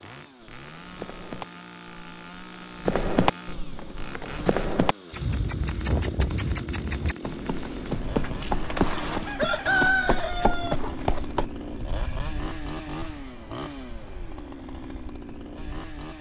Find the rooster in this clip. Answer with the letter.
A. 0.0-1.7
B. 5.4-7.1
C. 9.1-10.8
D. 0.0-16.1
C.